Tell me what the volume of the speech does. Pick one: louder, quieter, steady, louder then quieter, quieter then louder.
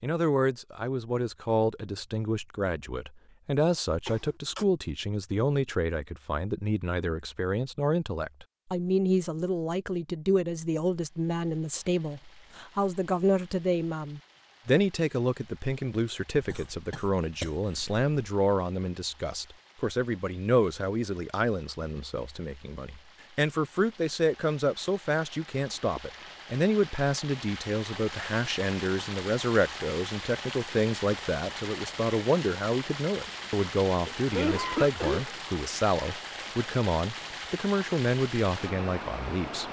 steady.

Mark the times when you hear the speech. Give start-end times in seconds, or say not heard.
0.0-39.6.